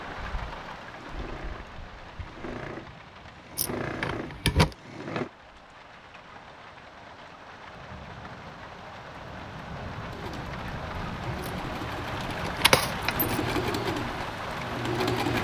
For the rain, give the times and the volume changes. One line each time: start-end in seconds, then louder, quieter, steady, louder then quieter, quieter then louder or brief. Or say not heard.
0.0-15.3 quieter then louder.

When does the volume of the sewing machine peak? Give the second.
15 s.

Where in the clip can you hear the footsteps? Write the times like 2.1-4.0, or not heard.
not heard.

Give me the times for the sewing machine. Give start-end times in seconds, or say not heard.
0.0-5.3, 10.1-15.3.